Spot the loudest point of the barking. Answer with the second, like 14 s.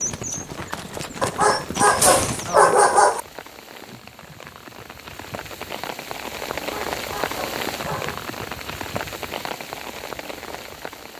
3 s.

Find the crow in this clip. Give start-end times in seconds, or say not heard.
not heard.